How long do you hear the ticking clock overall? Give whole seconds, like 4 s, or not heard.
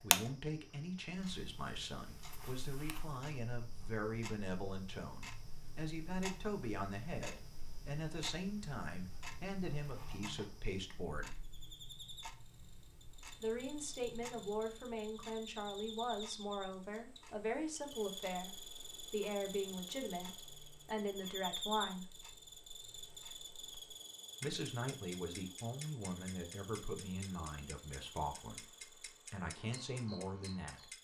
31 s.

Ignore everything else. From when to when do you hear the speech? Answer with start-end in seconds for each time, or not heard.
0.0-11.3, 13.4-22.1, 24.4-30.9.